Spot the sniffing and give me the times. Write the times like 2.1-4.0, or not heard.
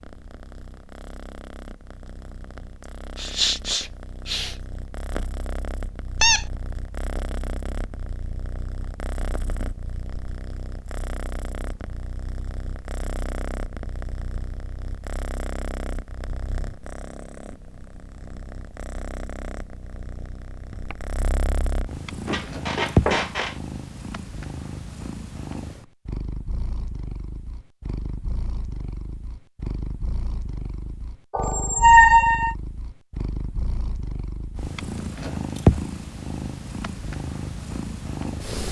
3.1-4.5.